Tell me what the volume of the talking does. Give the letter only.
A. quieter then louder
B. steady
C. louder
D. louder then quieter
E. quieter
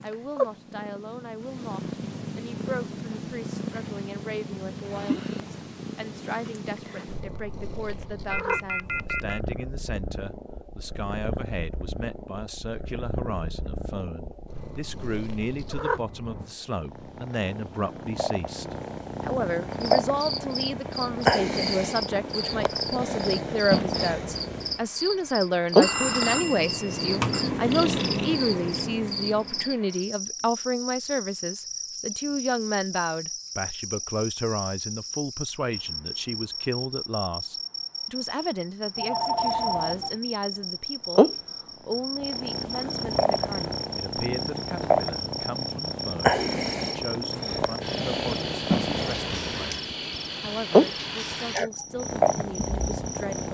D.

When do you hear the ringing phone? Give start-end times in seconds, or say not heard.
8.3-9.4, 25.8-27.4, 39.0-40.2.